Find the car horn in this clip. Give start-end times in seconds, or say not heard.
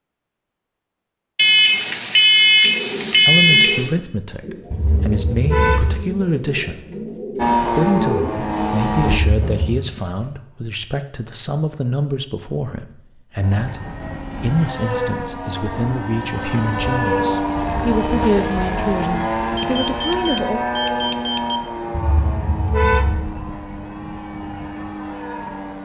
4.7-6.0, 9.2-9.8, 21.9-23.2.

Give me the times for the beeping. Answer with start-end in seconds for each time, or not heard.
1.4-3.9, 19.6-21.6.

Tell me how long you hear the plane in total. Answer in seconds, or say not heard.
14 s.